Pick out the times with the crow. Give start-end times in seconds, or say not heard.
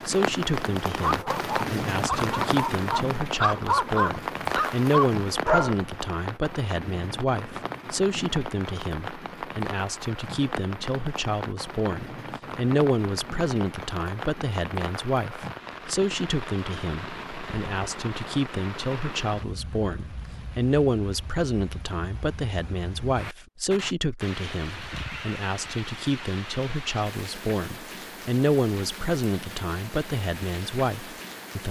not heard.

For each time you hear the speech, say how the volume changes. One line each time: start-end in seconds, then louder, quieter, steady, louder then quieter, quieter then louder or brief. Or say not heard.
0.1-31.6 steady.